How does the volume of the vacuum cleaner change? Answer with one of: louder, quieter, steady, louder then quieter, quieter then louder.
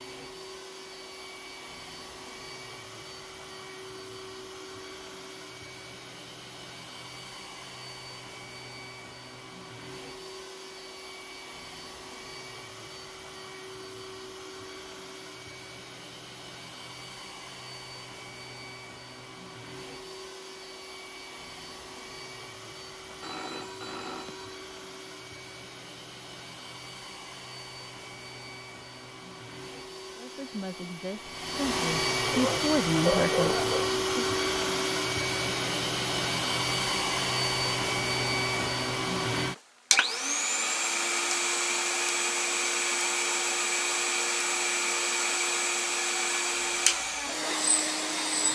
louder.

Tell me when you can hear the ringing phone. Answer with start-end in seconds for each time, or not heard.
23.1-24.6.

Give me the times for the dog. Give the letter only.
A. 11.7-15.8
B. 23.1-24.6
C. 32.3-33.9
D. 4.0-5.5
C.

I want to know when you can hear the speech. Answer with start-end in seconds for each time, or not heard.
30.1-34.2.